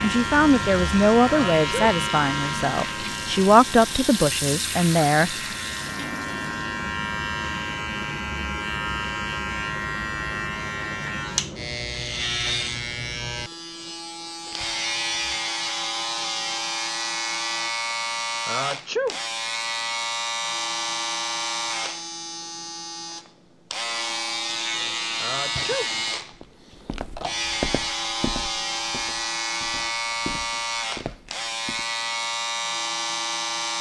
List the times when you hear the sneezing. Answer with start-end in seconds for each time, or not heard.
1.2-1.9, 18.4-19.1, 25.2-25.9.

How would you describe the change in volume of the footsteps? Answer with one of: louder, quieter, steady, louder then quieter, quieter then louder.
quieter then louder.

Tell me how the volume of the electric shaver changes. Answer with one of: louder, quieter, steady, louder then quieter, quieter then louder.
steady.